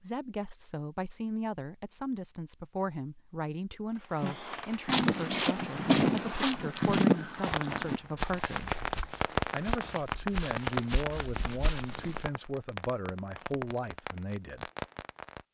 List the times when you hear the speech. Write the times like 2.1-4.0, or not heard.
0.0-8.8, 9.5-14.7.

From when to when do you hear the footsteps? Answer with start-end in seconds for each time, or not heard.
4.8-12.2.